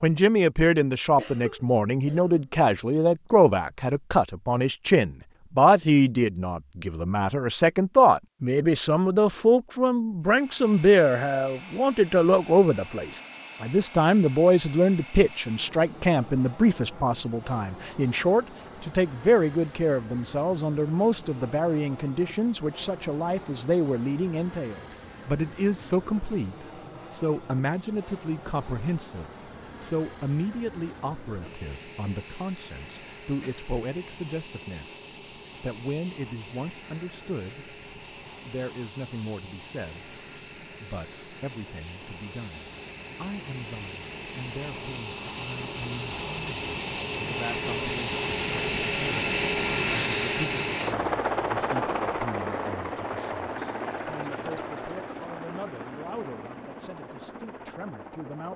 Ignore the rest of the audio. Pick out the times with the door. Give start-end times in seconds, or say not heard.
not heard.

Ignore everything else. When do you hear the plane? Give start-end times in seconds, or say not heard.
10.2-58.5.